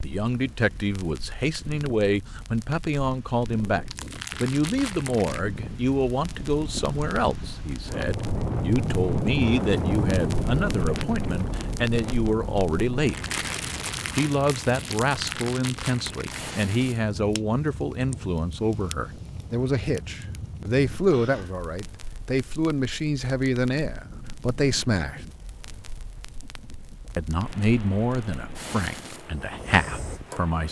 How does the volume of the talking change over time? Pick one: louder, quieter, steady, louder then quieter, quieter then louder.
steady.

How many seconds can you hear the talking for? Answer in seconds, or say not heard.
28 s.